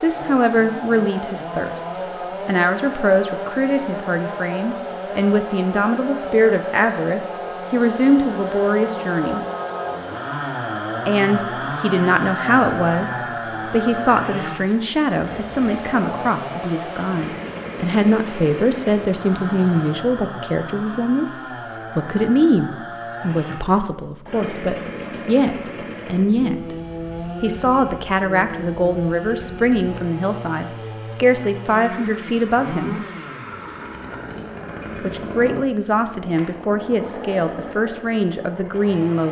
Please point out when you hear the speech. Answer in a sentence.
You can hear the speech from 0.0 to 1.9 s, from 2.5 to 9.4 s, from 11.1 to 26.8 s, from 27.4 to 33.0 s and from 35.0 to 39.2 s.